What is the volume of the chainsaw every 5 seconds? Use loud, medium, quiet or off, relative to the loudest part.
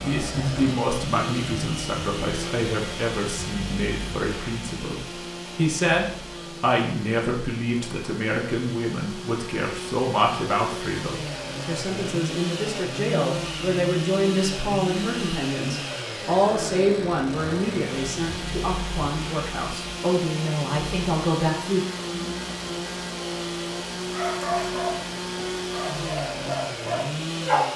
loud, medium, loud, loud, loud, loud.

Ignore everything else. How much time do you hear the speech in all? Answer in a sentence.
The speech can be heard for 22 seconds in total.